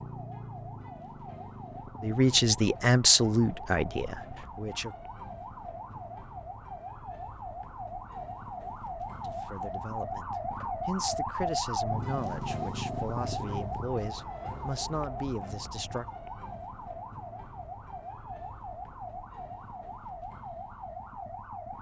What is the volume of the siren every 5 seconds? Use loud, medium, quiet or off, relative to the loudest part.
medium, medium, loud, medium, medium.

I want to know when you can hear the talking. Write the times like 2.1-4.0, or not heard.
2.0-5.0, 9.2-16.1.